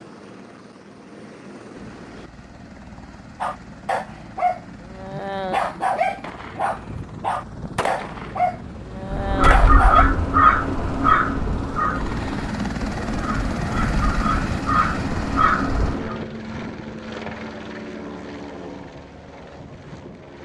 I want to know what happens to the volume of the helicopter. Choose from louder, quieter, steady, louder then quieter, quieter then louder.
louder then quieter.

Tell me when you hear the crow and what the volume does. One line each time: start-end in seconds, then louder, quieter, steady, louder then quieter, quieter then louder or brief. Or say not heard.
9.1-16.1 quieter then louder.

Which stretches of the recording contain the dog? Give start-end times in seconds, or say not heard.
3.4-10.1.